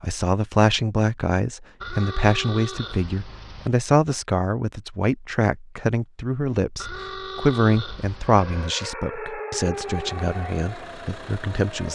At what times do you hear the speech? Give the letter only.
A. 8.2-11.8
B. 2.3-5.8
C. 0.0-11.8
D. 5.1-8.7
C.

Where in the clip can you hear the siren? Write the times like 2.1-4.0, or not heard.
8.2-11.8.